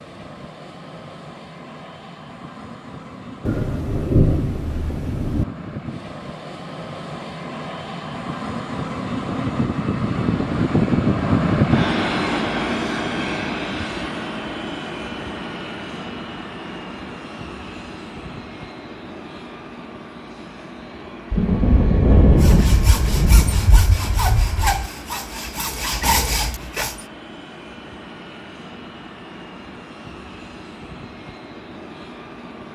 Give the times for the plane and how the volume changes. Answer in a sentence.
The plane can be heard from 0.0 to 32.7 s, getting louder then quieter.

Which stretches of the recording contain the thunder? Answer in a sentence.
You can hear the thunder from 3.5 to 5.5 s and from 21.3 to 24.9 s.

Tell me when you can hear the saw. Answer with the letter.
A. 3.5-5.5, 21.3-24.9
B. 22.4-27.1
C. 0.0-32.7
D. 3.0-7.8
B.